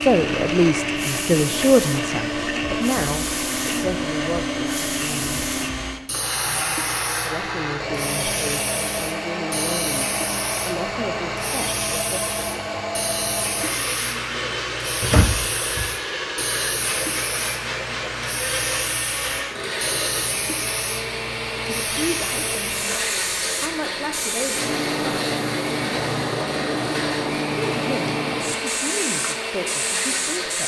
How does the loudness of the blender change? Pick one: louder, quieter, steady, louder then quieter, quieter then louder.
steady.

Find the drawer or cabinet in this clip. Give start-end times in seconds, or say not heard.
15.0-15.9.